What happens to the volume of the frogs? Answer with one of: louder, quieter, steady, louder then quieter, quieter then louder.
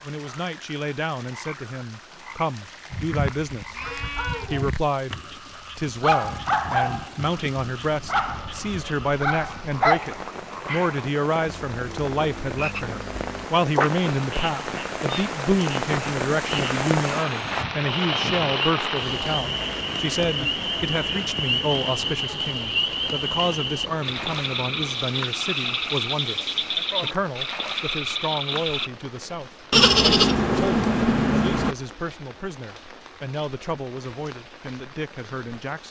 louder.